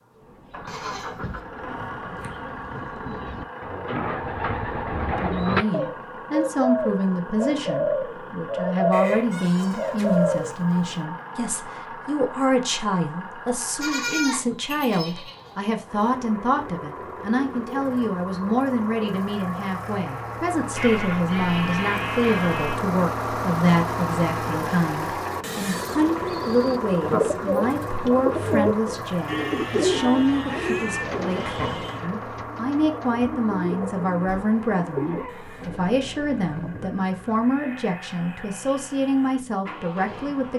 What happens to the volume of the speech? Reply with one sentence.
The loudness of the speech stays about the same.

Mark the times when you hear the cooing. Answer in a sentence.
You can hear the cooing from 0.1 to 10.6 s and from 25.4 to 35.9 s.